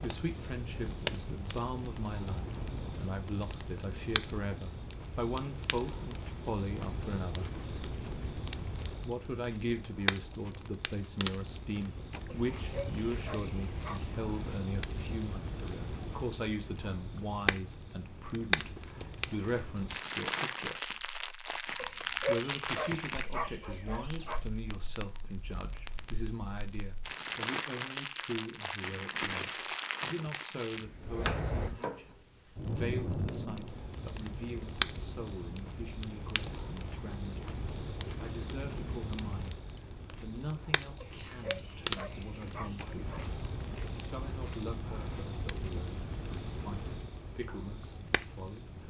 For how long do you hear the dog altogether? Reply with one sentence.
The dog can be heard for 7 seconds in total.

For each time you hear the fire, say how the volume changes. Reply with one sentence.
You can hear the fire from 0.0 to 48.8 s, at a steady volume.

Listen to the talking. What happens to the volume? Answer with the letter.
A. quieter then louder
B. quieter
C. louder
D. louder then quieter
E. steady
B.